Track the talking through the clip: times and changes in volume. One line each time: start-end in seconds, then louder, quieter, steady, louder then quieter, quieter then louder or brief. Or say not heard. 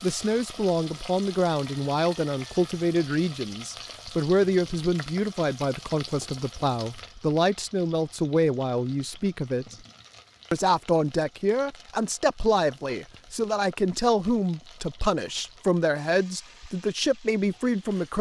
0.0-9.8 steady
10.5-18.1 steady.